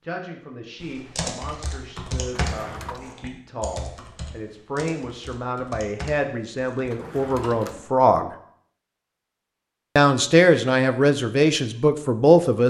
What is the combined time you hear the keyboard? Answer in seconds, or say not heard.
7 s.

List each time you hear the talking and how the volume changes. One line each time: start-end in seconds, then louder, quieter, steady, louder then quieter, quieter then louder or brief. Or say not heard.
0.0-8.3 louder
9.9-12.6 brief.